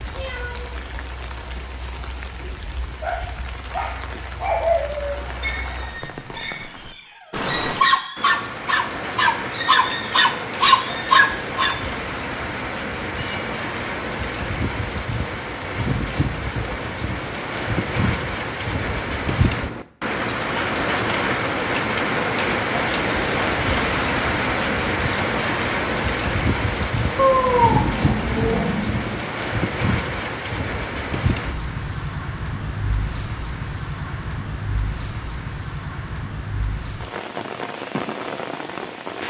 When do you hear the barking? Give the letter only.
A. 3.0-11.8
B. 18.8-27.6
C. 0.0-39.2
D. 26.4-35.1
A.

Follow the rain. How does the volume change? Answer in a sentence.
The loudness of the rain goes up, then down.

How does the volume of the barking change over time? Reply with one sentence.
The volume of the barking goes down, then up.